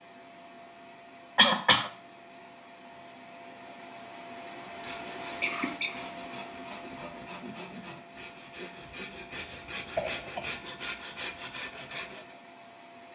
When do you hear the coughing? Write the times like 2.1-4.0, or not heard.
1.4-1.9, 4.5-6.0, 9.3-10.6.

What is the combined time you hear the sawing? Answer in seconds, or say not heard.
8 s.